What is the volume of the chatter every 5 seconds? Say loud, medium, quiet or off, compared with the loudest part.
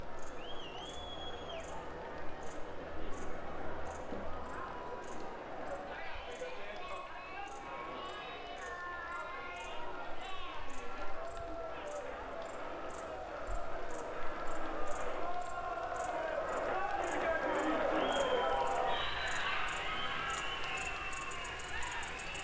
medium, medium, medium, loud, medium.